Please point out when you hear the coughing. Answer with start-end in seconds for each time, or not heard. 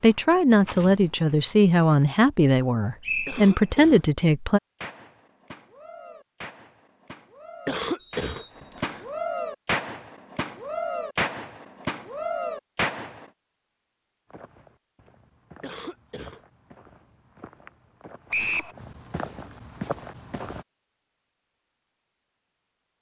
3.2-4.0, 7.7-8.4, 15.6-16.4.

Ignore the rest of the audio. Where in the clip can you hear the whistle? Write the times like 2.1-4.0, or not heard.
3.0-3.5, 8.0-9.1, 18.3-18.8.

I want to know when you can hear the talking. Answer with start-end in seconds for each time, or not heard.
0.0-4.6.